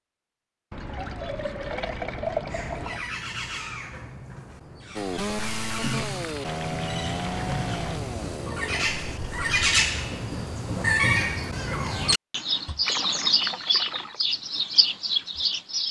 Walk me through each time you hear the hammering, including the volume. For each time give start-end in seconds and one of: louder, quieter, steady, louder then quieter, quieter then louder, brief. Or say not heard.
not heard.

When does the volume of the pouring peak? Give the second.
2 s.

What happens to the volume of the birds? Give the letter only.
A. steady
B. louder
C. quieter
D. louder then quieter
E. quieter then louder
B.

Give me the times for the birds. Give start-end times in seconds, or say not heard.
2.5-15.8.